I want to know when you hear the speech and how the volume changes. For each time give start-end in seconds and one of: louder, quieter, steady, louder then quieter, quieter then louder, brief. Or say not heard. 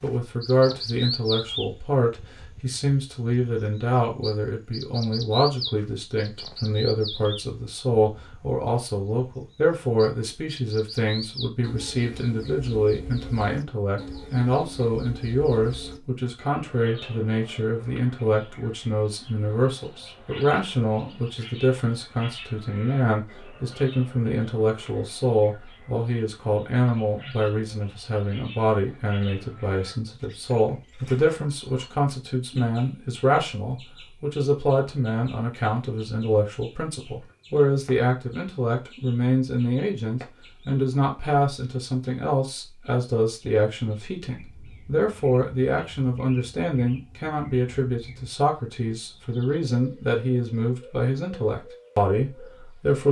0.0-53.0 steady.